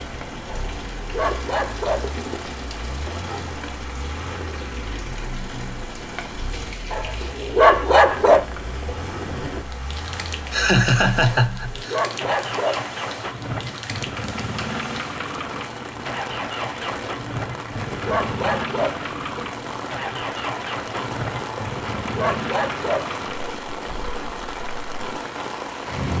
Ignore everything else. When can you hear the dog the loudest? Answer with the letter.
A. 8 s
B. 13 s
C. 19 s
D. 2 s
A.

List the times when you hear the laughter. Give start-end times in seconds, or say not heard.
10.5-12.0.